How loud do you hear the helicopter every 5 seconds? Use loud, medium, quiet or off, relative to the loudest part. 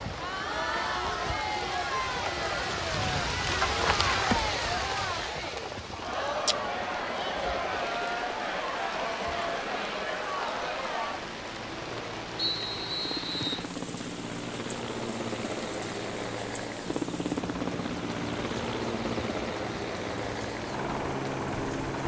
medium, medium, medium, loud, loud.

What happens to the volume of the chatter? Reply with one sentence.
The loudness of the chatter stays about the same.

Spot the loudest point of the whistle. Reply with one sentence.
The loudest moment of the whistle is at 13 seconds.